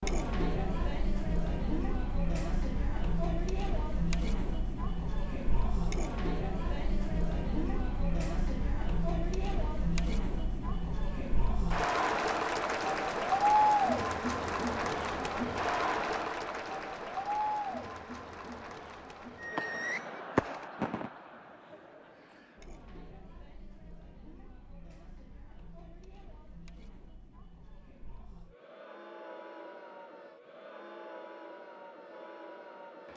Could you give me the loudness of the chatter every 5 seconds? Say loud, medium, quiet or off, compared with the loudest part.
medium, medium, loud, medium, quiet, quiet, quiet.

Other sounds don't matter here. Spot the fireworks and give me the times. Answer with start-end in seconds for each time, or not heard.
19.4-21.1.